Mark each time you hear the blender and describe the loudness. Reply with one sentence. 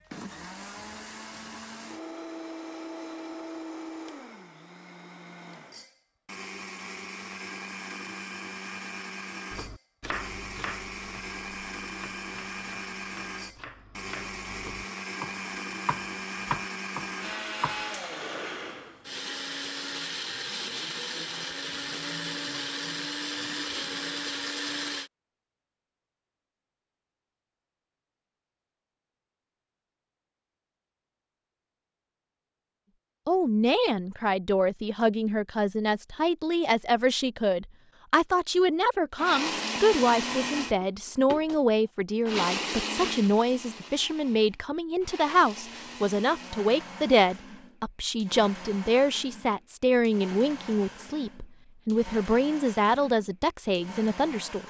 You can hear the blender from 0.0 to 25.1 s, getting louder; and from 39.1 to 54.6 s, getting quieter.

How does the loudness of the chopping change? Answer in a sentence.
The loudness of the chopping goes down, then up.